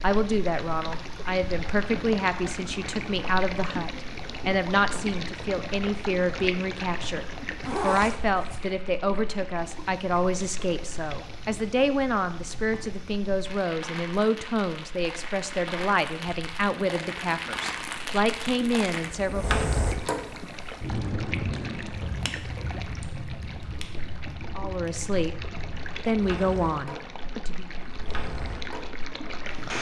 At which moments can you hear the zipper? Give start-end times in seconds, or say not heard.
7.6-8.6.